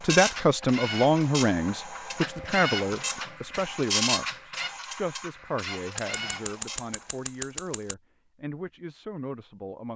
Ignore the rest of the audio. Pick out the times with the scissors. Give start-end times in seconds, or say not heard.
2.4-3.2, 6.0-8.0.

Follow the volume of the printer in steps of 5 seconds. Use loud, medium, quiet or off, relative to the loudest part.
loud, medium.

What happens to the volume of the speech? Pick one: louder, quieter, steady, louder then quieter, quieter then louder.
quieter.